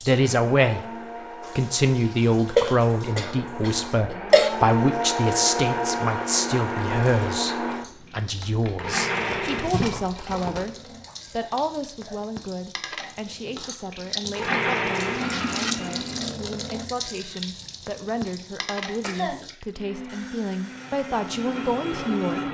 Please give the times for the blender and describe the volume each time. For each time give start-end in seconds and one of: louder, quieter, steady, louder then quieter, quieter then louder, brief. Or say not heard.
0.1-9.7 louder
14.3-16.3 brief
19.8-22.4 brief.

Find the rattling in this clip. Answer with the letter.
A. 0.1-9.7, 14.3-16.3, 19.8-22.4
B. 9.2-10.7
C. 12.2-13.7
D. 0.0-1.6
B.